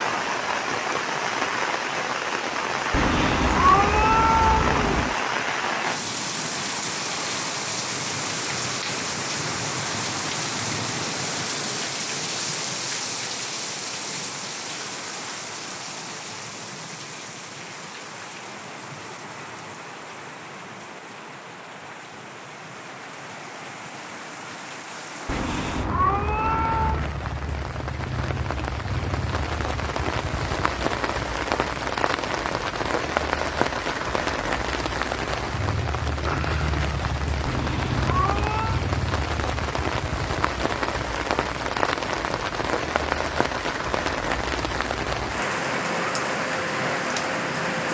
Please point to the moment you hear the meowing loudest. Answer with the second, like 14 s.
4 s.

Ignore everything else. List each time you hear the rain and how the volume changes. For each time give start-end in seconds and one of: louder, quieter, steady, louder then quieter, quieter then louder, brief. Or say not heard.
0.0-47.8 quieter then louder.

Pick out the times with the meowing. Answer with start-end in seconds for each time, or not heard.
2.9-5.2, 25.2-27.1, 37.5-38.8.